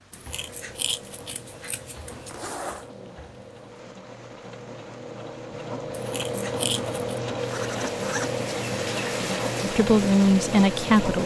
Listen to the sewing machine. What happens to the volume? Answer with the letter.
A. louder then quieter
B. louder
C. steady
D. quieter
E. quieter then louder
B.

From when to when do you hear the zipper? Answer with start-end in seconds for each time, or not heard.
2.2-2.9, 7.3-8.3.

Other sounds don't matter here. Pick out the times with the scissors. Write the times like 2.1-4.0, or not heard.
0.1-2.5, 6.0-7.0.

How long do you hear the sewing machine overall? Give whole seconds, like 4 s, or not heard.
11 s.